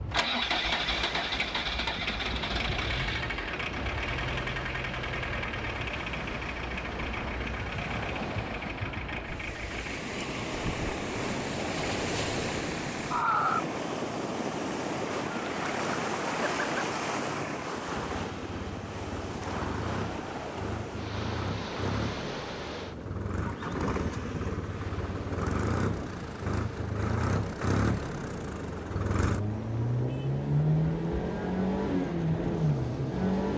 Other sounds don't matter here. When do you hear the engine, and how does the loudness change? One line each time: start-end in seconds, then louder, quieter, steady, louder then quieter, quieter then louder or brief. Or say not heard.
0.0-33.5 quieter then louder.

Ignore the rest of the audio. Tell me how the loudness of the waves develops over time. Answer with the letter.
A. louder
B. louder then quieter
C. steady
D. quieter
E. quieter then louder
B.